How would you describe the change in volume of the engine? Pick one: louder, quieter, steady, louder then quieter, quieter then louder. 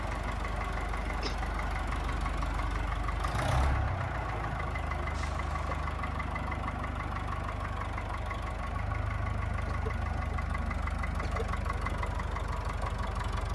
steady.